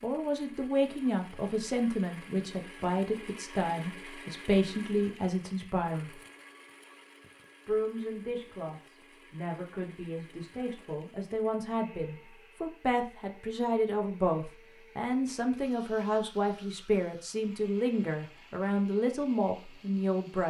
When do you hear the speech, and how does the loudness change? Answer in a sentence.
You can hear the speech from 0.0 to 6.2 s, at a steady volume; and from 7.7 to 20.4 s, getting louder.